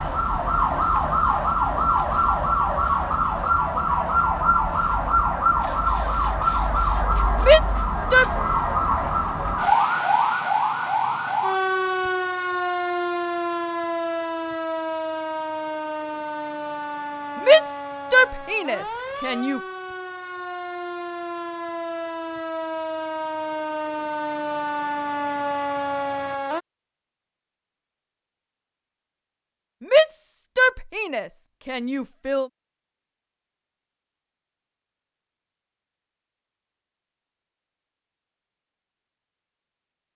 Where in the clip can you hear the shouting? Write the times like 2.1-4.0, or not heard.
7.3-8.2, 17.4-19.6, 29.8-32.5.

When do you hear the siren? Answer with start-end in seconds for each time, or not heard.
0.0-26.6.